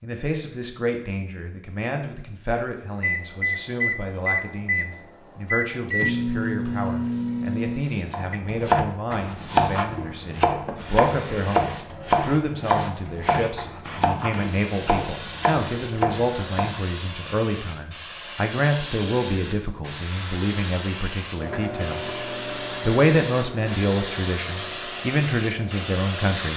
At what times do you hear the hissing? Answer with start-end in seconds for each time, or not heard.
9.1-26.5.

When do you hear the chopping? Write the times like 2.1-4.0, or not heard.
8.1-16.8.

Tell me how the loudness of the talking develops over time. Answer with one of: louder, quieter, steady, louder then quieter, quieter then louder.
louder.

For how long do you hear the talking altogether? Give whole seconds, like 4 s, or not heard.
26 s.